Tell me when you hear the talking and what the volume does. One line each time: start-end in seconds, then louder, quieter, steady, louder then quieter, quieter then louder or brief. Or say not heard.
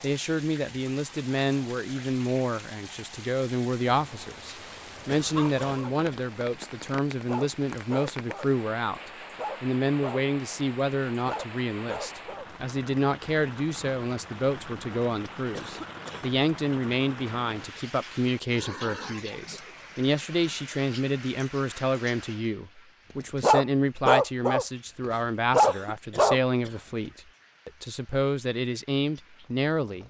0.0-30.0 steady.